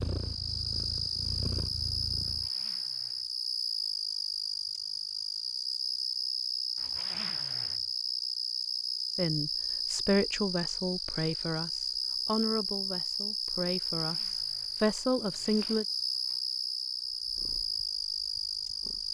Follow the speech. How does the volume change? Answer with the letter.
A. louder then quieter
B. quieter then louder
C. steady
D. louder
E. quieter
B.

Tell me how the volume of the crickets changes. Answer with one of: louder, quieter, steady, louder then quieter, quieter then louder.
steady.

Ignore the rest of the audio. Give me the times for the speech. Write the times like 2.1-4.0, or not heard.
9.2-15.8.